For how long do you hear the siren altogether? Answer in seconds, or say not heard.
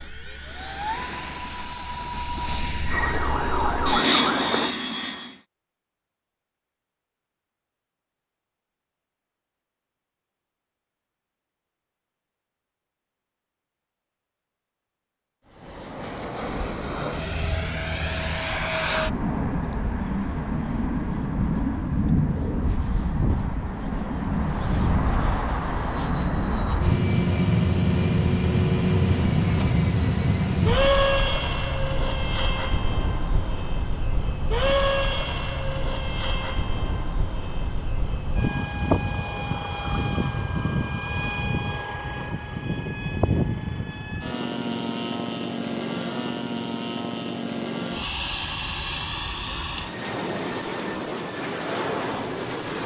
2 s.